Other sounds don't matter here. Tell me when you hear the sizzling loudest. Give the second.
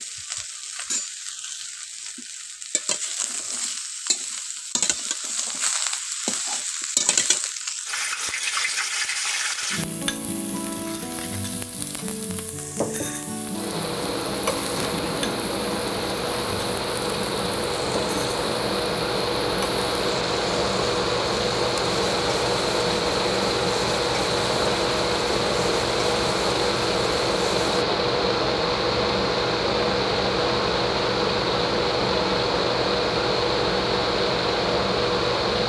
7 s.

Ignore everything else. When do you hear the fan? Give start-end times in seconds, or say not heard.
13.5-35.6.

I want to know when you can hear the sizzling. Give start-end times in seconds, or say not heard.
0.0-27.9.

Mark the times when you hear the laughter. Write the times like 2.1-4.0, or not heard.
14.7-15.4.